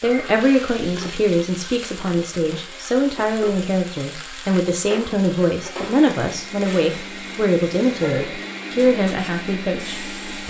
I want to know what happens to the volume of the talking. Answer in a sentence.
The loudness of the talking stays about the same.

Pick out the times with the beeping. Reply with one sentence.
You can't hear the beeping here.